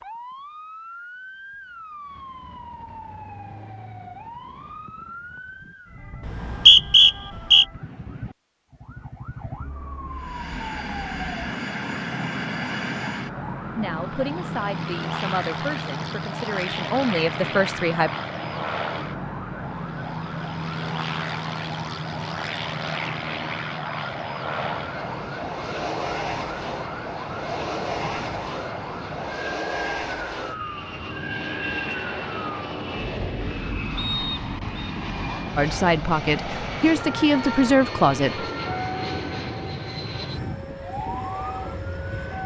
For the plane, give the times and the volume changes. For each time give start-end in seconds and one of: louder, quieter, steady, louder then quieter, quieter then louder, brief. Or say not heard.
10.1-42.4 steady.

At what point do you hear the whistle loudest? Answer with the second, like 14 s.
7 s.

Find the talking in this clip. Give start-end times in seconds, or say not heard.
13.8-18.1, 35.5-38.5.